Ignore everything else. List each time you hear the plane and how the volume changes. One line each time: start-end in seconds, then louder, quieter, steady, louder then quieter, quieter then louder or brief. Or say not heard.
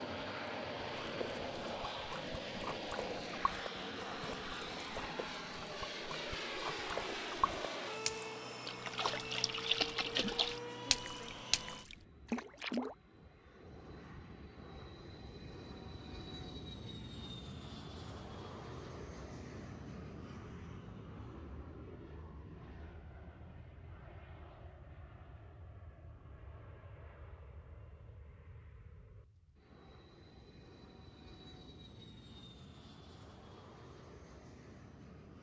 0.0-35.3 quieter.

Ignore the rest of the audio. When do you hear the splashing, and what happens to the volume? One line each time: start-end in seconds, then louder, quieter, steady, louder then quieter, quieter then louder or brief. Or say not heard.
1.0-12.9 louder.